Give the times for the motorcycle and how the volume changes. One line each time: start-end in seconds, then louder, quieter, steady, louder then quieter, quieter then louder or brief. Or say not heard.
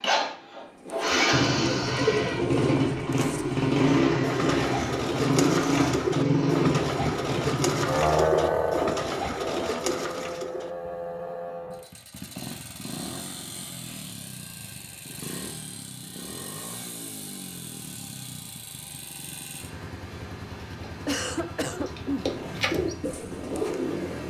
0.0-24.2 quieter.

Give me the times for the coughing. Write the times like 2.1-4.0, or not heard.
21.1-22.3.